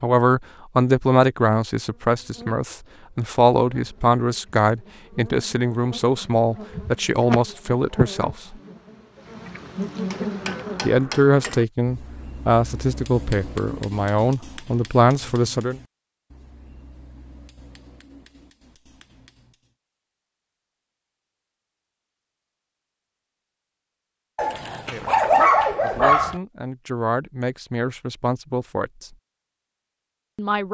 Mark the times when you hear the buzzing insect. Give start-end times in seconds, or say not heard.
1.8-11.0.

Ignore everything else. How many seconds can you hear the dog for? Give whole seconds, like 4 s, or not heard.
2 s.